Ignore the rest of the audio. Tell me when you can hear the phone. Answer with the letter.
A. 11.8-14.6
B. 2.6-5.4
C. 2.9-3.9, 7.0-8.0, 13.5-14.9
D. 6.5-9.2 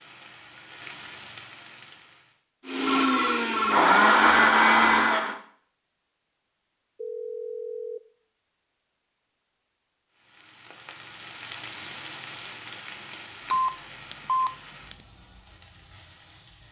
C.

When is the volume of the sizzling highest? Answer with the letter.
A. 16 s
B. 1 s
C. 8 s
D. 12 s
D.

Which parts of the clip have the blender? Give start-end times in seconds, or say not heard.
2.6-5.4.